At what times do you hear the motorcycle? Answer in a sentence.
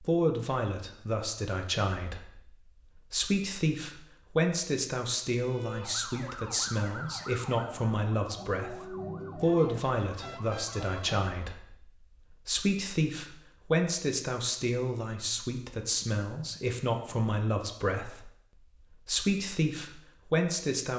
The motorcycle can't be heard in this clip.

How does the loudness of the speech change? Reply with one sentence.
The volume of the speech stays about the same.